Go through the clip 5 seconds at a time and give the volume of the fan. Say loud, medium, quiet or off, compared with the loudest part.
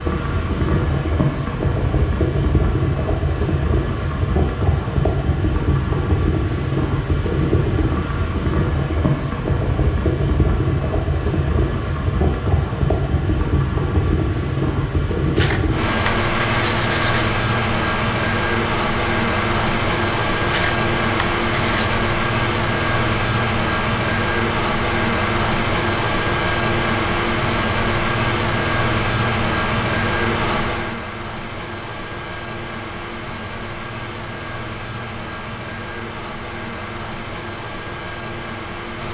loud, loud, loud, loud, loud, loud, medium, medium.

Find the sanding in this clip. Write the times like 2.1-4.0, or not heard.
15.3-17.3, 20.4-22.0.